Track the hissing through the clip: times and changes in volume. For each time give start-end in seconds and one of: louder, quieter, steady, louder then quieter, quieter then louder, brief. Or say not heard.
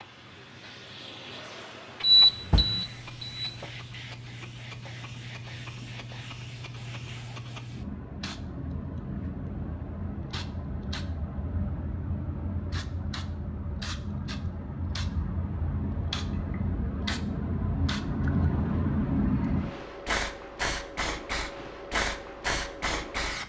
0.0-23.4 louder.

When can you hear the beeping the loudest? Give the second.
2 s.